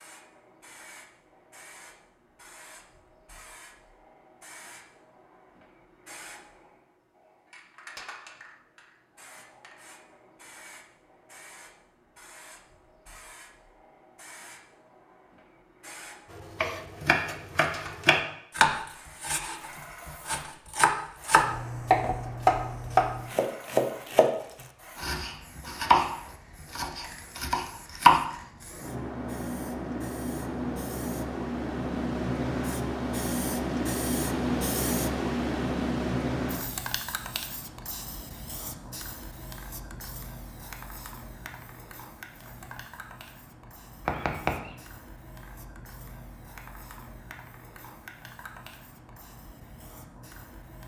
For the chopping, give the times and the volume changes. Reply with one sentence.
You can hear the chopping from 16.3 to 24.3 s, getting louder; briefly from 24.9 to 26.1 s; and briefly from 26.8 to 28.2 s.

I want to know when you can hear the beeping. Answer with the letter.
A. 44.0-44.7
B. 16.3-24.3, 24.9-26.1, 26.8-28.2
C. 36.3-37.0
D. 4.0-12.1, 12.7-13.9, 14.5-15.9
A.